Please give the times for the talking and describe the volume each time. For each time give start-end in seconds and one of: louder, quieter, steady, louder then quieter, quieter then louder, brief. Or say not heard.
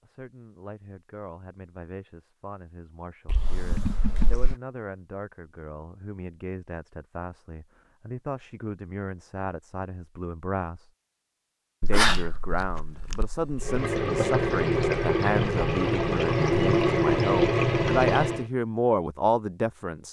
0.0-10.9 louder
11.8-20.0 louder.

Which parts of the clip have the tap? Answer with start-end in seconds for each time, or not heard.
13.6-18.4.